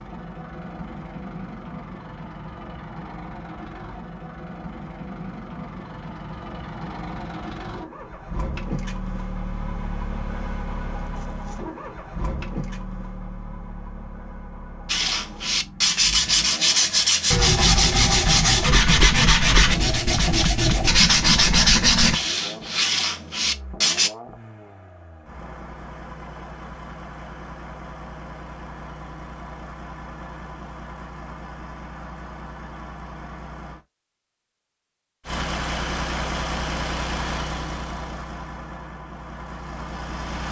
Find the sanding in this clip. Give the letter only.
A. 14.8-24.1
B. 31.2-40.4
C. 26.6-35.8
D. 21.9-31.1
A.